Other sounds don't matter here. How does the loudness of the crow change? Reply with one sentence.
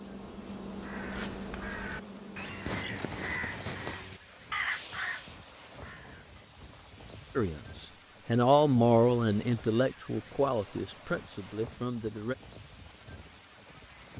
The loudness of the crow goes up, then down.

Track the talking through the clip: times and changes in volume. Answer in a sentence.
You can hear the talking from 7.3 to 12.3 s, getting quieter.